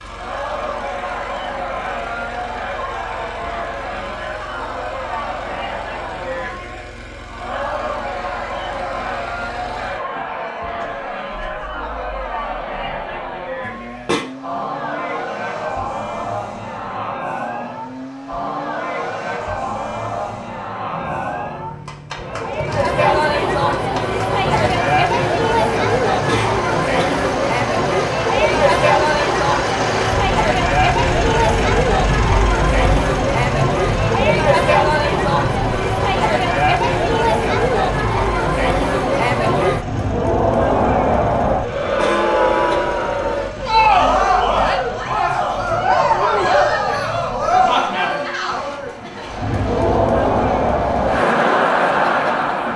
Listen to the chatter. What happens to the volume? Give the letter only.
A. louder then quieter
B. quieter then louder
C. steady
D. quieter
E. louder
E.